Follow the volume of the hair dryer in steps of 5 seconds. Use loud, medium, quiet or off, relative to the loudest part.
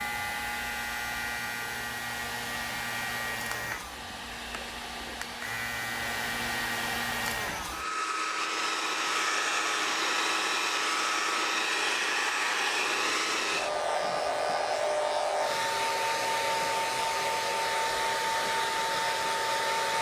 medium, loud, loud, loud.